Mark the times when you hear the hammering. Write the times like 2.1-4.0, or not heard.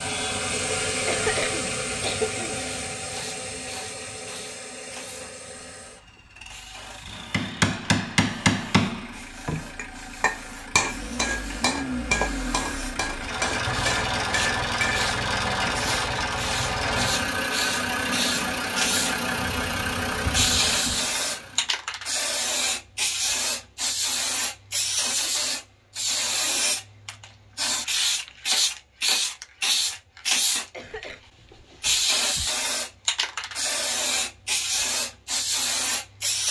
7.1-15.9.